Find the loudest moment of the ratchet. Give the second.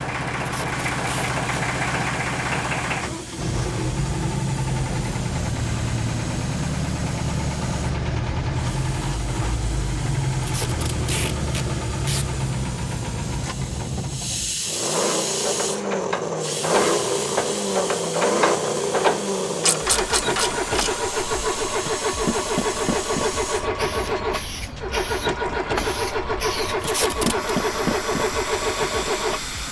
19 s.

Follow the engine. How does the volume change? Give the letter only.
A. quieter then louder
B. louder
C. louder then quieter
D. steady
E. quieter
D.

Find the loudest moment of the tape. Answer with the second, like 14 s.
27 s.